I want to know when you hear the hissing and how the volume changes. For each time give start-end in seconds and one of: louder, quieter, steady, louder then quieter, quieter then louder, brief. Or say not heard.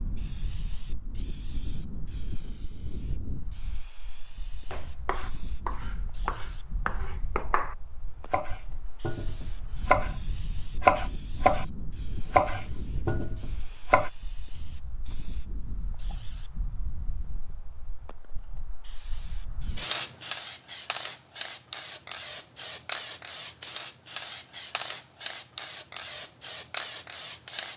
0.0-27.7 louder.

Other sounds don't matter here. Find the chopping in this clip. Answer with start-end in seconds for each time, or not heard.
4.7-14.1.